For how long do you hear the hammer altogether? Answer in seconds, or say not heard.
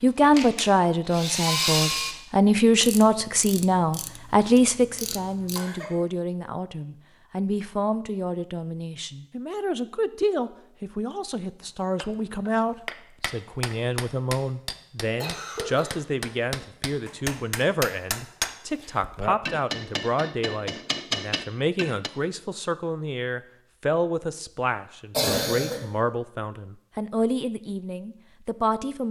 10 s.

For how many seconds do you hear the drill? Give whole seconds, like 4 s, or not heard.
2 s.